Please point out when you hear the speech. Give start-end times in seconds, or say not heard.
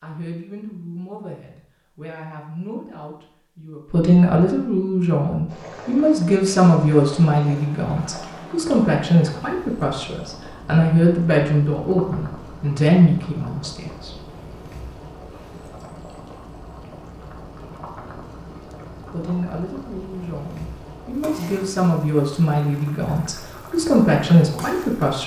0.0-14.1, 19.1-25.2.